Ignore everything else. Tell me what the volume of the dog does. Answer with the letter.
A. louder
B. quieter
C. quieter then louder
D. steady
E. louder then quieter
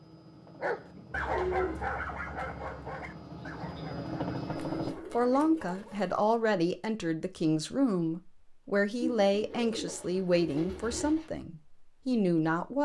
B.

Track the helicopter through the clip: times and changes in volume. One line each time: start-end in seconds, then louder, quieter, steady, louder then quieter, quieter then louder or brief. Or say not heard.
0.0-5.0 louder.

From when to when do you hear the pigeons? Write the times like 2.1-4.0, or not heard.
0.9-1.9, 4.5-6.2, 9.0-11.3.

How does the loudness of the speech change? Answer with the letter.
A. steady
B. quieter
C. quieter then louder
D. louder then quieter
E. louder
A.